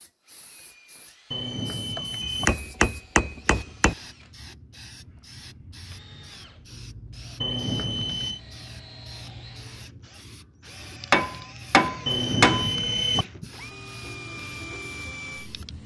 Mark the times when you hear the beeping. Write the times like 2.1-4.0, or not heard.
1.3-2.5, 7.4-8.4, 12.1-13.2.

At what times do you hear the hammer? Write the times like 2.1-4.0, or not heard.
1.9-4.0, 11.1-12.7.